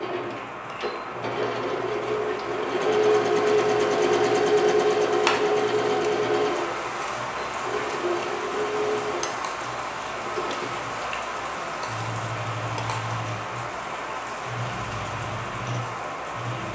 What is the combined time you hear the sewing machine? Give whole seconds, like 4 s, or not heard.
17 s.